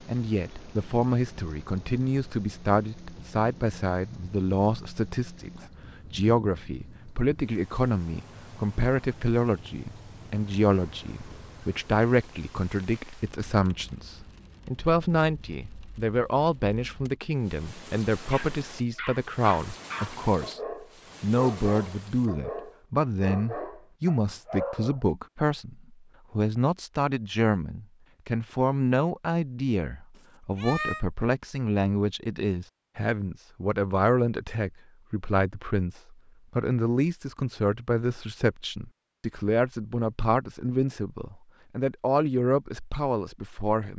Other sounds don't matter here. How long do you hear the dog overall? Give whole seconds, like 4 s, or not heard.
7 s.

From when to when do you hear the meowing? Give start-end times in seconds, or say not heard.
30.6-31.1.